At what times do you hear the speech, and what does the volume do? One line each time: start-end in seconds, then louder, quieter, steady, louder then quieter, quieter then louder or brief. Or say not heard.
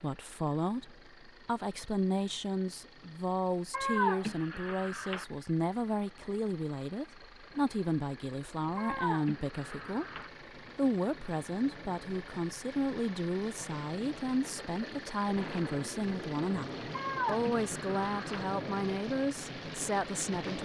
0.0-20.6 steady.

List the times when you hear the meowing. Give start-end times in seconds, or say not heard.
3.7-5.2, 8.8-10.3, 16.9-18.4.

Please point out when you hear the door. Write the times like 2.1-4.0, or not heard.
not heard.